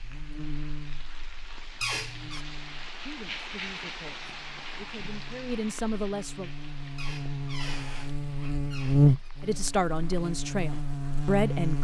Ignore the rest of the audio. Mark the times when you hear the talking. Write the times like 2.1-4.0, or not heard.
3.0-6.5, 9.4-11.7.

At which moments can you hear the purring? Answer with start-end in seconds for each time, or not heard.
not heard.